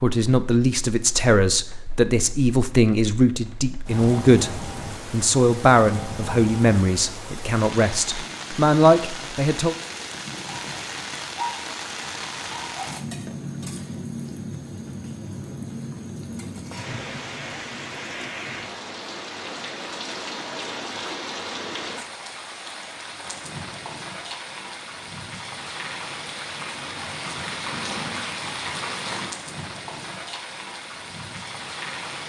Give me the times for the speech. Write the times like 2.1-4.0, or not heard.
0.0-9.8.